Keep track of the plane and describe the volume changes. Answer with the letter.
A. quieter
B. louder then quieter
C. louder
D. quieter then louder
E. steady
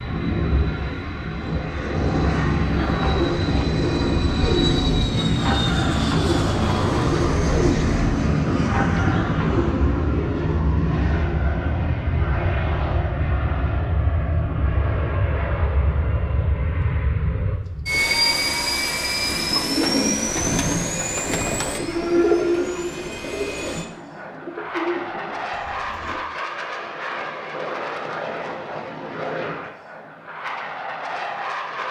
A.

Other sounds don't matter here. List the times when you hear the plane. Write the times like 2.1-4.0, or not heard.
0.0-31.8.